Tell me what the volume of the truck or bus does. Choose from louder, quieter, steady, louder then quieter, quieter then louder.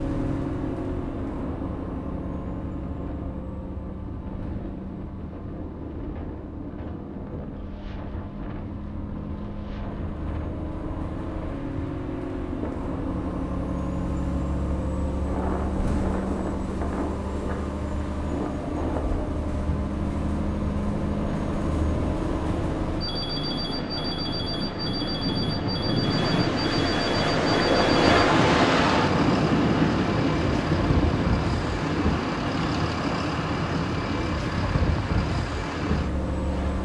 louder.